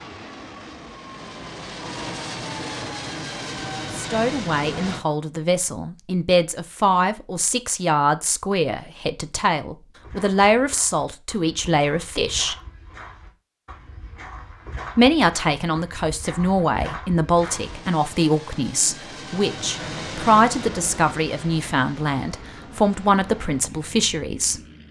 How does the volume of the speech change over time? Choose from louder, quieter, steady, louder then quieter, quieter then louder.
steady.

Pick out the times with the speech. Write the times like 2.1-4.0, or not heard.
4.0-12.6, 14.9-24.6.